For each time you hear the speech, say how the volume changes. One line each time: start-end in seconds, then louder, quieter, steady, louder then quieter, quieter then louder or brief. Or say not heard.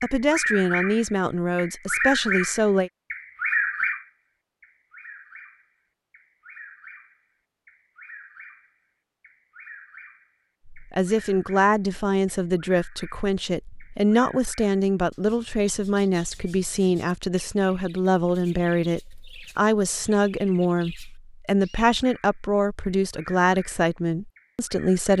0.0-2.9 brief
10.7-25.1 steady.